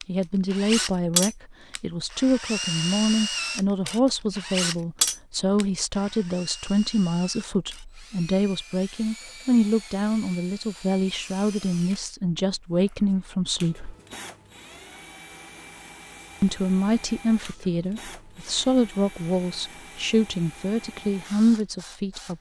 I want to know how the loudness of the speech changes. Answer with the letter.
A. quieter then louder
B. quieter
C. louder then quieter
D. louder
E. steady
E.